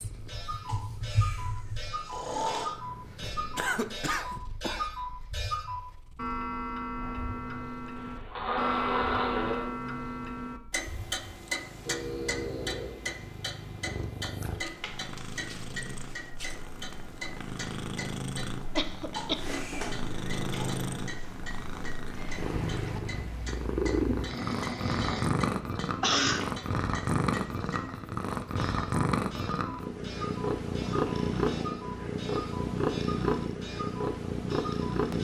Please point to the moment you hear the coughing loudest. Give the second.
26 s.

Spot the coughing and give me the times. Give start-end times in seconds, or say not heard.
3.5-4.8, 18.8-19.6, 26.0-26.5.